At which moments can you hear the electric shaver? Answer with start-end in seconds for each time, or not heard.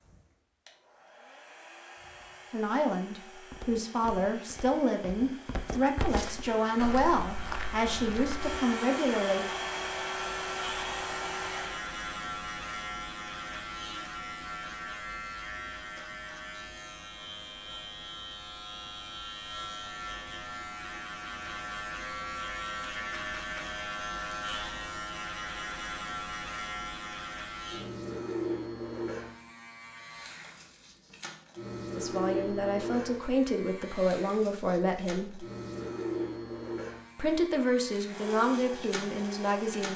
6.4-39.9.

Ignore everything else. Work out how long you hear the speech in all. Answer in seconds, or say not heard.
13 s.